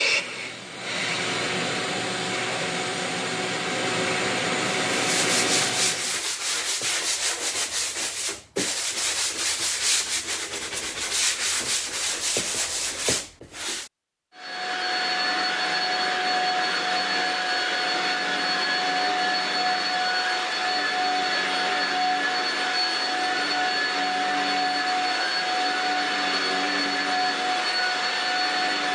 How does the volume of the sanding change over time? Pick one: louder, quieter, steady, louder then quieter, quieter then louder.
steady.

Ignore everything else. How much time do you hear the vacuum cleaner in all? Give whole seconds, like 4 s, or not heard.
21 s.